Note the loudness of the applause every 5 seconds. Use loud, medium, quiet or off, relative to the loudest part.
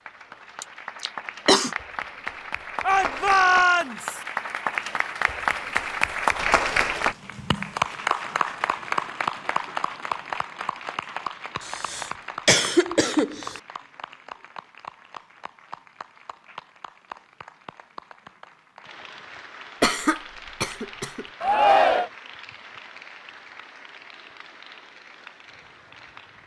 medium, loud, medium, quiet, quiet, quiet.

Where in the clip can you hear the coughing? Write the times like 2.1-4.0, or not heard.
0.6-1.7, 11.6-13.6, 19.8-21.2.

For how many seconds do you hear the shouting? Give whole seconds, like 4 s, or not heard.
2 s.